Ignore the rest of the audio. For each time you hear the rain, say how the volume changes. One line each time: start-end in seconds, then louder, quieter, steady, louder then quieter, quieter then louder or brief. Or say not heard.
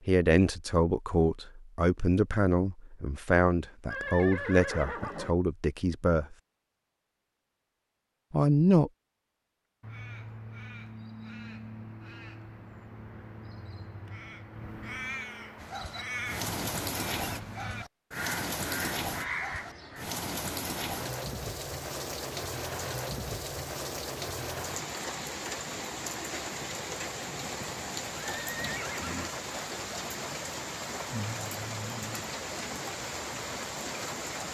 15.6-34.4 steady.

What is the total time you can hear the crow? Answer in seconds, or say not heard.
10 s.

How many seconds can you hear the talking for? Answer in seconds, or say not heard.
7 s.